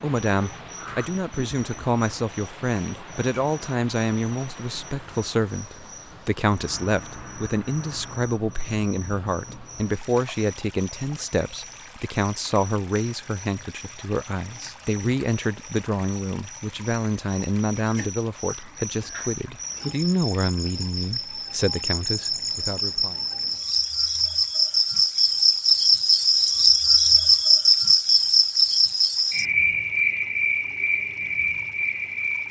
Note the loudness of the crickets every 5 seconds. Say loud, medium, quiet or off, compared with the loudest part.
quiet, quiet, quiet, quiet, medium, loud, medium.